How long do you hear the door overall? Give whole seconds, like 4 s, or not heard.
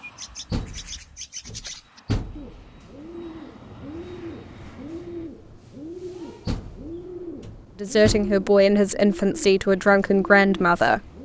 4 s.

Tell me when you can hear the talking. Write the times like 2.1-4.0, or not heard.
7.8-11.0.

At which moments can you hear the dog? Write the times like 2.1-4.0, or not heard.
not heard.